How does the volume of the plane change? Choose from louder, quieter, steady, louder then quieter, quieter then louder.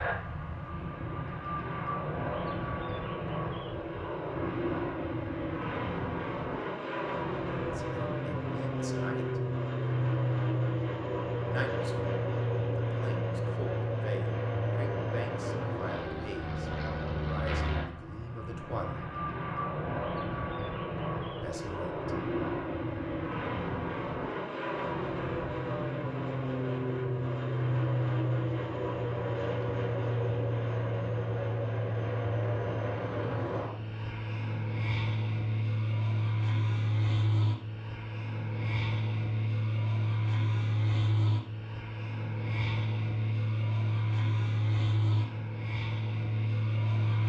steady.